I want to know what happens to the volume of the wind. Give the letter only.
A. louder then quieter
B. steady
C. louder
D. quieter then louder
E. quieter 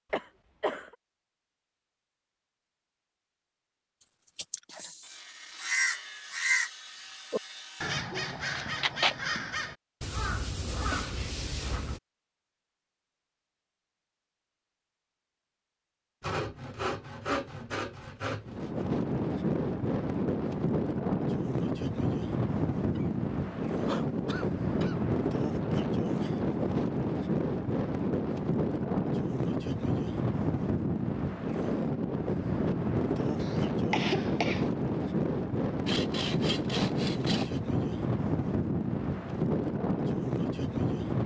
B.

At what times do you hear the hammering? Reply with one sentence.
The hammering can't be heard in this clip.